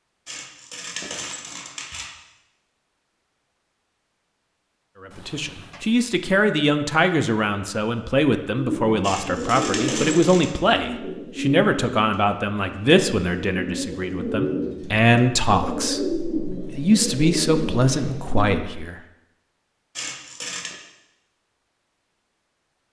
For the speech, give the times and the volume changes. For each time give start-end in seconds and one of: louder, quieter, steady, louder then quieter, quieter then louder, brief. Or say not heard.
5.0-19.0 steady.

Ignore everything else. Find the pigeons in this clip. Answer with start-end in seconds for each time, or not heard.
8.6-18.6.